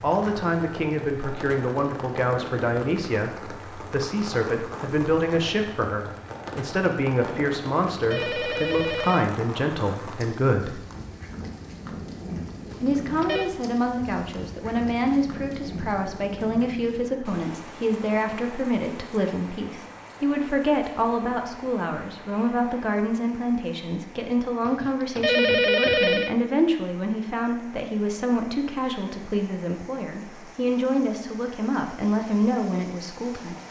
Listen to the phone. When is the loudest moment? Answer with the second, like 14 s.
26 s.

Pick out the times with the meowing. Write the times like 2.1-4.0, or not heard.
not heard.